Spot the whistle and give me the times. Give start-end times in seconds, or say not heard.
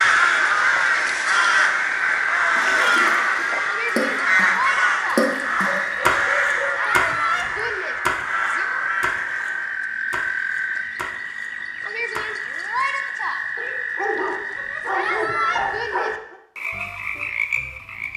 not heard.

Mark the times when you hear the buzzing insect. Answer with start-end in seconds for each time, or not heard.
not heard.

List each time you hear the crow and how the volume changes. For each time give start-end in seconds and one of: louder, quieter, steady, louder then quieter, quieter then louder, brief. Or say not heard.
0.0-9.9 quieter.